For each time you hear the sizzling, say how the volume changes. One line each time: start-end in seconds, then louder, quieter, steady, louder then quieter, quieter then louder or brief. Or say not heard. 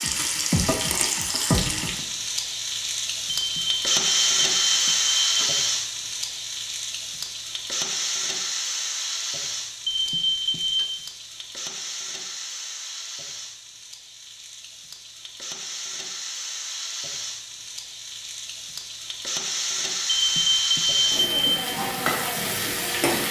0.0-23.2 quieter then louder.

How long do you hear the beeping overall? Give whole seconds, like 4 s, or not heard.
5 s.